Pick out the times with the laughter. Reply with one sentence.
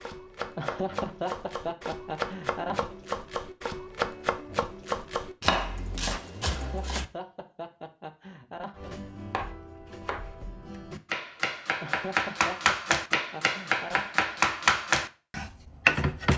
You can hear the laughter from 0.6 to 3.0 s, from 6.5 to 8.9 s and from 11.8 to 14.2 s.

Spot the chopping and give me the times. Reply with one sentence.
The chopping can be heard from 0.0 to 7.0 s and from 8.8 to 16.3 s.